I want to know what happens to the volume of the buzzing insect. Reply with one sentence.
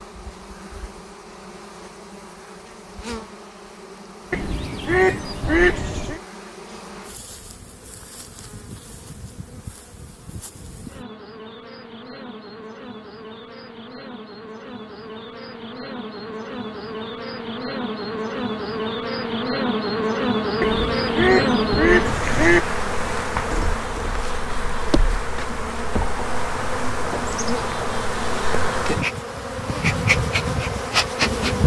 The volume of the buzzing insect goes up.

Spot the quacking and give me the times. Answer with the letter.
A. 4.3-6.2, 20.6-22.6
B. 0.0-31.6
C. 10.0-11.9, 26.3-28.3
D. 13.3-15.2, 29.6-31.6
A.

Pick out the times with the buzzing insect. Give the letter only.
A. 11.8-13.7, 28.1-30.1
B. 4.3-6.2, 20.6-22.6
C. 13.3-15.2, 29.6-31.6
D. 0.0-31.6
D.